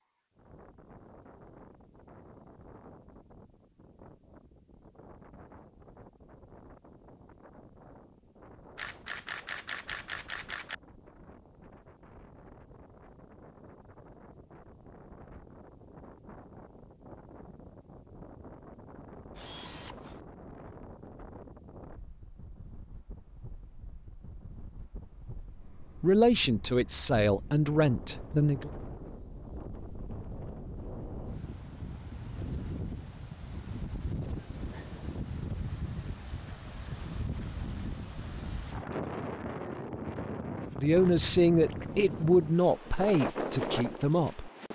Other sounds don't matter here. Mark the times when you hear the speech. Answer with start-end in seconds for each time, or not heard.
25.8-28.7, 40.8-44.5.